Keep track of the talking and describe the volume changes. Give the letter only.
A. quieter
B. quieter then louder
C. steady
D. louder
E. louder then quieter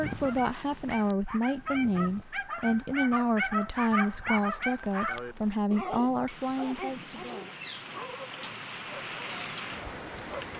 C.